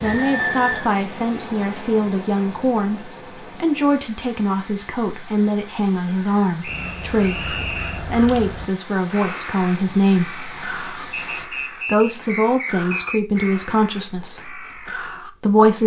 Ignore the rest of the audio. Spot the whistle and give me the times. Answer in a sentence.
You can hear the whistle from 0.0 to 0.9 s, from 6.6 to 8.1 s and from 11.1 to 13.6 s.